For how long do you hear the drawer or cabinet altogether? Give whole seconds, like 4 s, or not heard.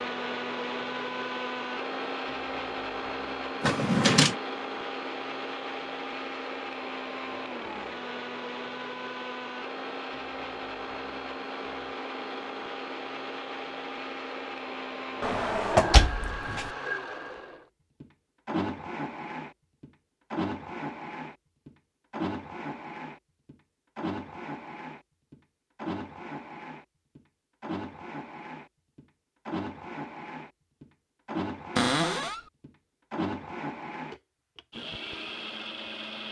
3 s.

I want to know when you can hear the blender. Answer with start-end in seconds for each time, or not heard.
0.0-36.2.